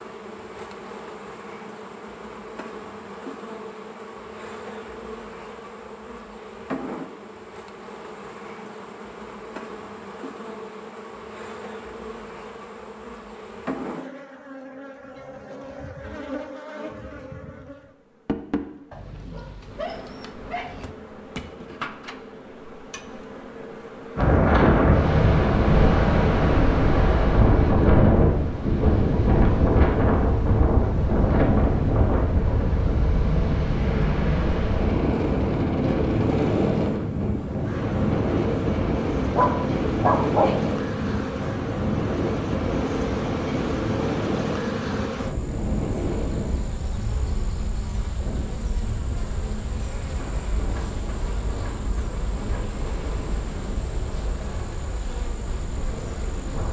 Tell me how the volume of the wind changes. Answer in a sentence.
The loudness of the wind goes down.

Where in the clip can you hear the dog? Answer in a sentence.
You can hear the dog from 18.9 to 20.9 s and from 39.4 to 40.6 s.